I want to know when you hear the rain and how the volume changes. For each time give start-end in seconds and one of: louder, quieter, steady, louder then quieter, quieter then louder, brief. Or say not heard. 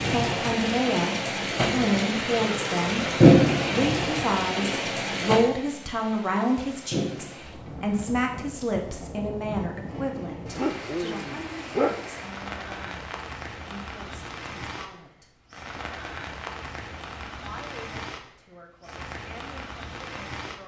0.0-20.6 quieter.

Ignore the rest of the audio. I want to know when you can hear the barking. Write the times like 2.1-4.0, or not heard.
10.6-12.1.